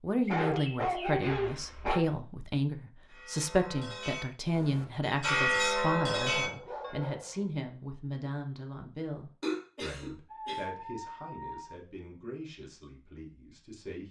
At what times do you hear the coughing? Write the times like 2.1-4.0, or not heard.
9.4-10.7.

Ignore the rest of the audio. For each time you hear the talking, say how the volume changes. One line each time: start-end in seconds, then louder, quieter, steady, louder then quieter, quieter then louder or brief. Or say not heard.
0.0-14.0 quieter.